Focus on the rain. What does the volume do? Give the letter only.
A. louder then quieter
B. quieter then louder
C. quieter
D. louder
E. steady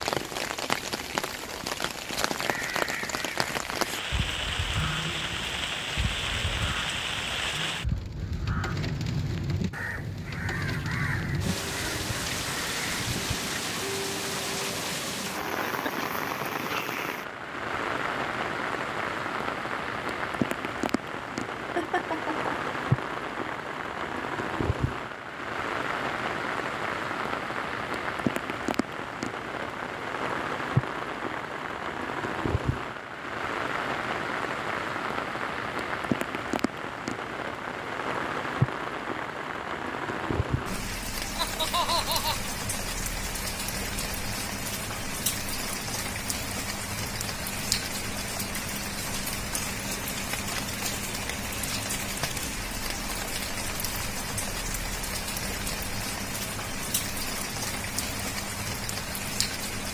E.